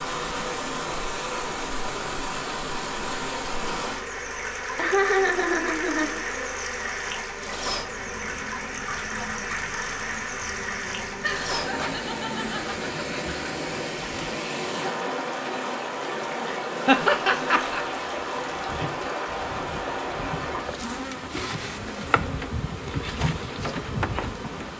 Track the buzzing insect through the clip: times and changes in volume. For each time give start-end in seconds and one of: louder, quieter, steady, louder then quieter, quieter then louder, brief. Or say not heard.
0.0-24.7 louder.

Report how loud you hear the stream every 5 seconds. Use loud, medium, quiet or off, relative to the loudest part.
loud, loud, loud, loud, medium.